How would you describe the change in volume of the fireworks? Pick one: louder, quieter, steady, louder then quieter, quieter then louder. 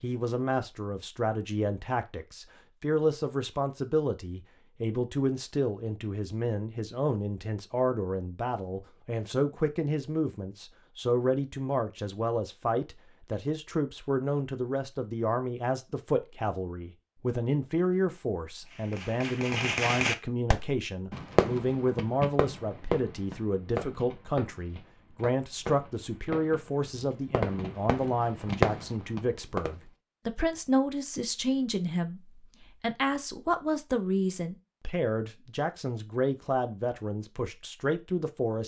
quieter then louder.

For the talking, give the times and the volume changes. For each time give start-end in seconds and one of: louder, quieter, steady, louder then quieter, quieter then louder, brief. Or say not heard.
0.0-38.6 steady.